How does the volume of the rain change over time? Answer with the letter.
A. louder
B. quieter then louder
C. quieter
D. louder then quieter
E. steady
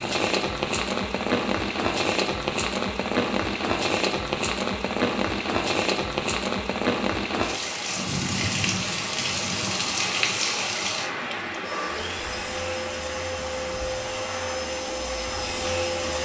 C.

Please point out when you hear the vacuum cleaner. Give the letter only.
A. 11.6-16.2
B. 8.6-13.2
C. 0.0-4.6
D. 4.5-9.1
A.